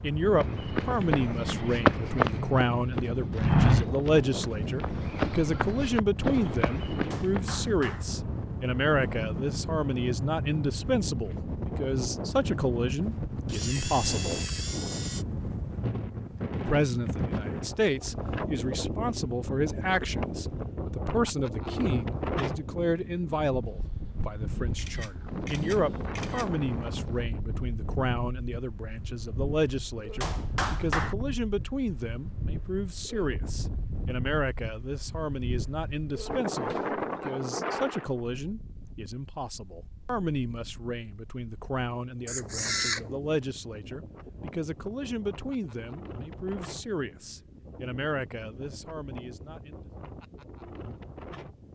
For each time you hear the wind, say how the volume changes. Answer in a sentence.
The wind can be heard from 0.0 to 51.7 s, getting quieter.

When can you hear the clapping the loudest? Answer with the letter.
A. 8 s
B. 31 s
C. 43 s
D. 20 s
B.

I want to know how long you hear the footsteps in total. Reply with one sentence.
The footsteps can be heard for 7 seconds in total.